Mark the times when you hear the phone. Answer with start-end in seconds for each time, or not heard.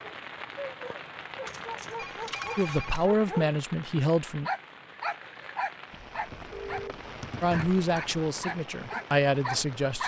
1.9-3.0, 6.5-7.0.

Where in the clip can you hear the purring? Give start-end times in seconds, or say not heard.
not heard.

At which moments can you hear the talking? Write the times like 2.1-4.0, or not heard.
2.5-4.5, 7.4-10.0.